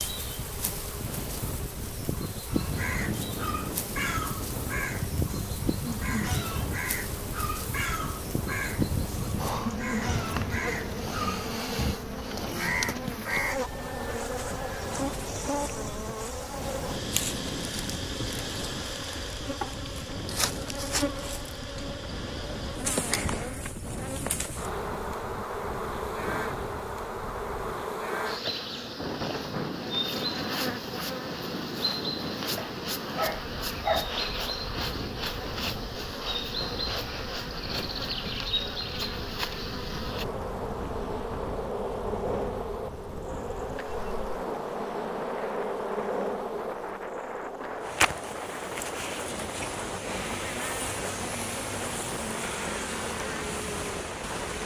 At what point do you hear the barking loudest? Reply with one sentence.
The loudest moment of the barking is at 34 seconds.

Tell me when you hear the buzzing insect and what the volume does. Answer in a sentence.
You can hear the buzzing insect from 0.0 to 54.6 s, at a steady volume.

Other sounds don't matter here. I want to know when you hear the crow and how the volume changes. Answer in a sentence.
The crow can be heard from 2.5 to 13.6 s, at a steady volume.